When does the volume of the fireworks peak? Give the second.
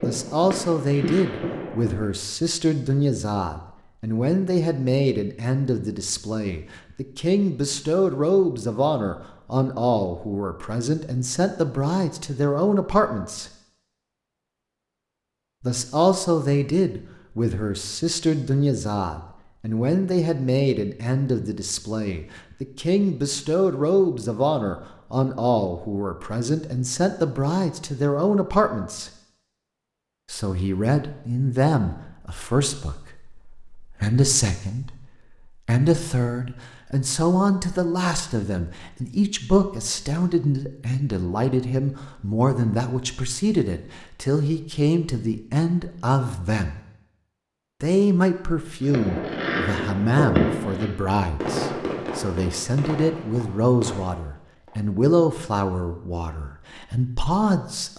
50 s.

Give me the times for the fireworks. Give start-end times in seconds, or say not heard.
0.0-2.0, 48.9-54.9.